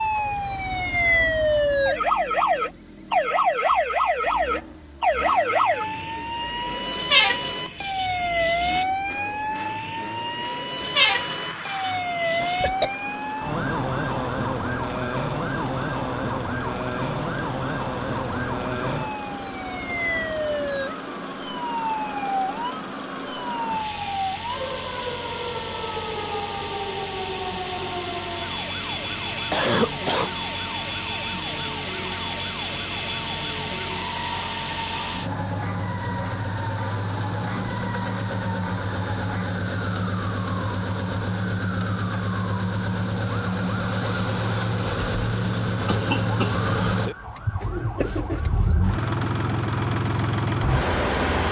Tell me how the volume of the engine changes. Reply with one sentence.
The loudness of the engine goes up.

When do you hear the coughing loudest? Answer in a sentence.
The loudest moment of the coughing is at 30 seconds.